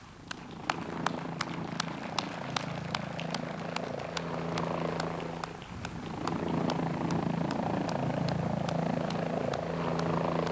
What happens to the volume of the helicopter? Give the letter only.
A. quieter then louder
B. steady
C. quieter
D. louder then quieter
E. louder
E.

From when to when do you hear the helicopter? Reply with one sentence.
The helicopter can be heard from 0.0 to 10.4 s.